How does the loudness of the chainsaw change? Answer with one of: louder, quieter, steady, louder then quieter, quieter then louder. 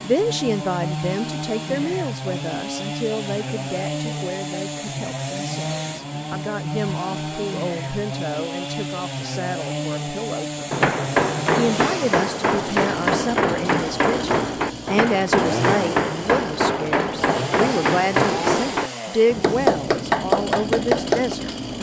steady.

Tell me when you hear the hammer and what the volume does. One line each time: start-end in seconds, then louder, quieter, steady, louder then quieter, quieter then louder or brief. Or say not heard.
10.7-21.4 steady.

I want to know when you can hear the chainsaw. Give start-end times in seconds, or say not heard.
0.0-21.7.